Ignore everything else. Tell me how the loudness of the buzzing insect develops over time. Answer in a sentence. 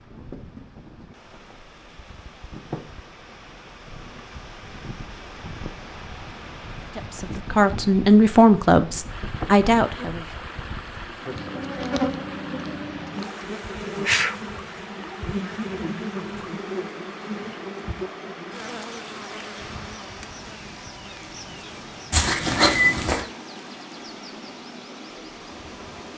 The loudness of the buzzing insect goes up, then down.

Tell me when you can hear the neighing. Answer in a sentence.
The neighing can be heard from 22.1 to 23.2 s.